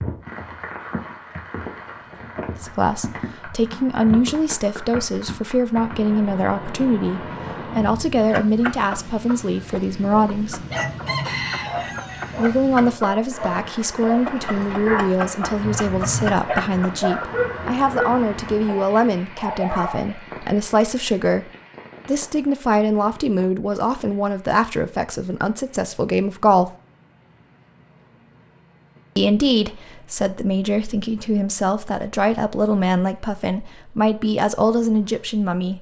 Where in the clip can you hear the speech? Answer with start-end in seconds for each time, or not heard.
2.6-10.7, 12.3-26.7, 29.1-35.7.